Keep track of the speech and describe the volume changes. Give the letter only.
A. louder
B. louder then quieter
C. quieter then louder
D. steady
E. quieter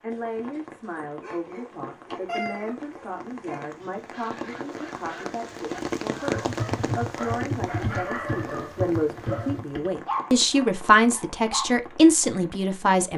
A.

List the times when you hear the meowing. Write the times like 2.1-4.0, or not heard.
2.2-2.8.